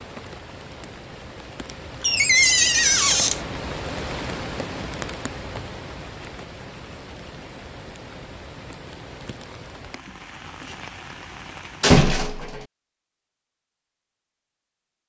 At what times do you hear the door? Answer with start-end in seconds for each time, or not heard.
2.0-3.4, 11.8-12.7.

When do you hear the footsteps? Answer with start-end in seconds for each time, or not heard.
not heard.